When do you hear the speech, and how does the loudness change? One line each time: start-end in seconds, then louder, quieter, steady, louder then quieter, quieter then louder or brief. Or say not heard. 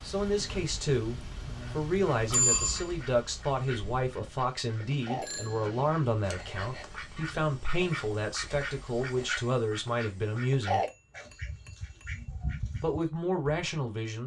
0.0-10.8 steady
12.8-14.2 brief.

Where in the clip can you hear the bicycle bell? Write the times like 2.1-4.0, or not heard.
2.3-2.9, 5.0-5.8, 10.8-12.2.